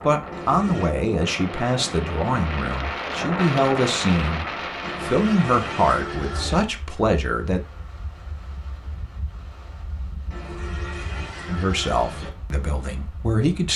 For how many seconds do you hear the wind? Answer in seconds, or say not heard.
14 s.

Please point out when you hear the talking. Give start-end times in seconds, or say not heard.
0.0-7.6, 11.4-13.7.